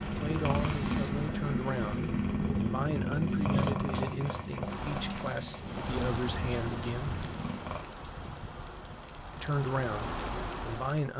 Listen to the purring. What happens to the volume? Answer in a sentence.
The volume of the purring goes down.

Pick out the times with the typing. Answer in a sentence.
You can't hear the typing here.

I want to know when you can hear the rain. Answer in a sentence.
You can hear the rain from 4.7 to 11.1 s.